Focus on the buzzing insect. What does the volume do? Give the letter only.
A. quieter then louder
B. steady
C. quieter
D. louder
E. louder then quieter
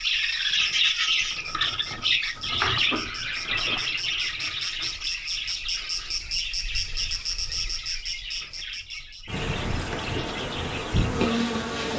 D.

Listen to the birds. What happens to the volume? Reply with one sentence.
The loudness of the birds goes down.